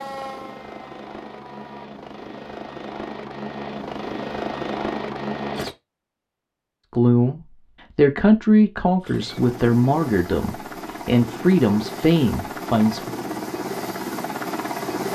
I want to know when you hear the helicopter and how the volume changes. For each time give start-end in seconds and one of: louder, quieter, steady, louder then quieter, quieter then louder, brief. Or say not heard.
0.0-5.8 louder
9.0-15.0 louder.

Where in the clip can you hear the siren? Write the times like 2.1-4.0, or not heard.
0.0-1.9.